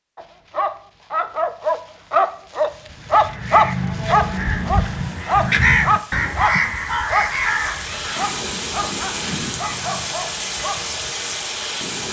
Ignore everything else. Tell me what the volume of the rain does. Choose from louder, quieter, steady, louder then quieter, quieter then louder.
louder.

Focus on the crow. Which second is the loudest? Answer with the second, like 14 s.
6 s.